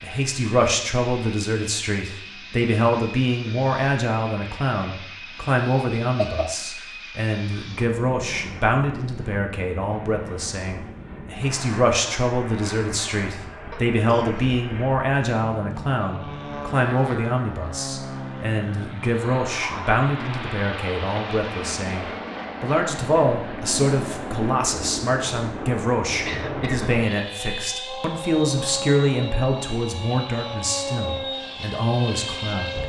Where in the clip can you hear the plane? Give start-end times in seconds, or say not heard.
0.0-32.8.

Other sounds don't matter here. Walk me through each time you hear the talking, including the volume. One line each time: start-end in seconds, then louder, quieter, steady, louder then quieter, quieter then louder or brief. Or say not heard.
0.0-32.8 steady.